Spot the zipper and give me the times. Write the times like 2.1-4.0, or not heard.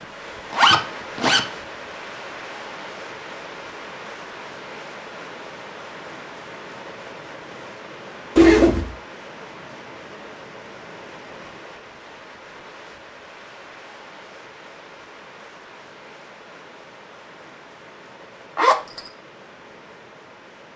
0.5-1.4, 8.3-8.9, 18.6-19.1.